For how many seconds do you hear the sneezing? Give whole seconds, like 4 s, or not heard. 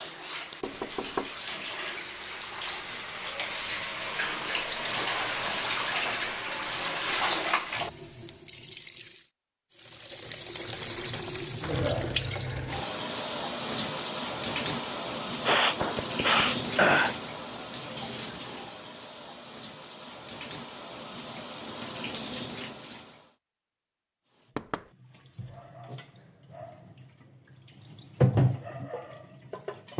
2 s.